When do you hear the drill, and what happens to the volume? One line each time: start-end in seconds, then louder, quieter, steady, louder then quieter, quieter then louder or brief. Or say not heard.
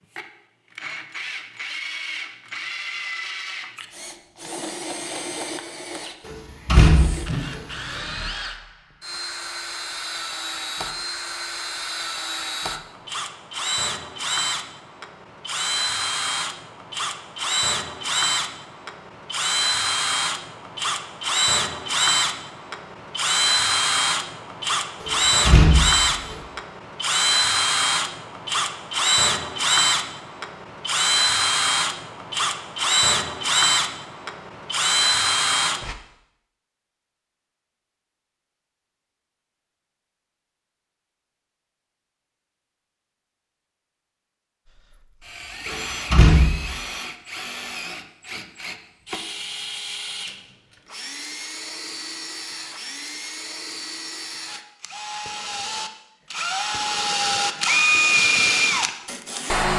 0.1-36.0 louder
44.6-59.7 louder.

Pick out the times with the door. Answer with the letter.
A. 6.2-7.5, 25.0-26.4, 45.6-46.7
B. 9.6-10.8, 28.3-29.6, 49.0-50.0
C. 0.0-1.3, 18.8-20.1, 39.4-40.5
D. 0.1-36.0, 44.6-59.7
A.